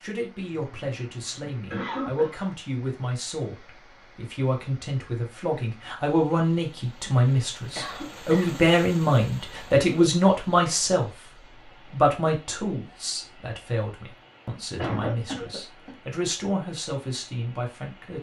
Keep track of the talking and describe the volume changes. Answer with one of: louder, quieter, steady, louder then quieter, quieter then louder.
louder then quieter.